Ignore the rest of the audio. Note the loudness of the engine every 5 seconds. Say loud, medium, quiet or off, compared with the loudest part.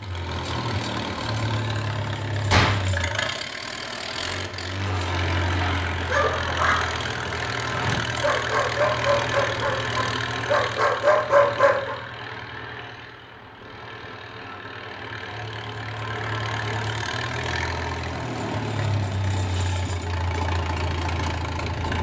loud, loud, medium, loud, loud.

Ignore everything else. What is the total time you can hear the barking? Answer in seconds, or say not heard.
6 s.